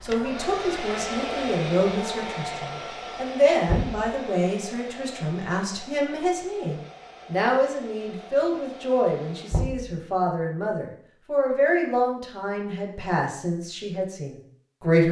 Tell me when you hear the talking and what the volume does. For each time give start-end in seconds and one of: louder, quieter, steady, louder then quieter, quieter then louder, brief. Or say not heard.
0.0-15.0 steady.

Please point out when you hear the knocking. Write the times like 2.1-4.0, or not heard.
3.6-4.1, 9.5-9.9.